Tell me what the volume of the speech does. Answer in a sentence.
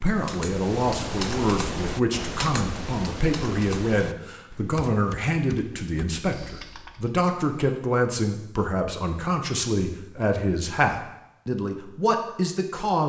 The volume of the speech stays about the same.